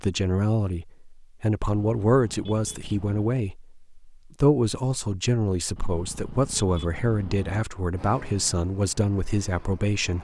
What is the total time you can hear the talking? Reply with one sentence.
You can hear the talking for 10 seconds altogether.